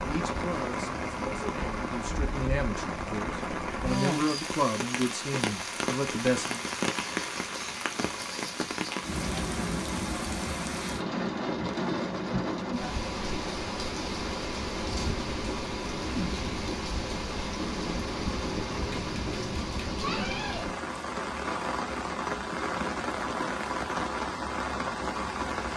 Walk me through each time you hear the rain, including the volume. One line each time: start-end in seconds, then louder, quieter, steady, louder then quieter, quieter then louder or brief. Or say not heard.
0.0-25.7 steady.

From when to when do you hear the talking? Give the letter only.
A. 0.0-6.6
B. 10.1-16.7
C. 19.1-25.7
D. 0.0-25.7
A.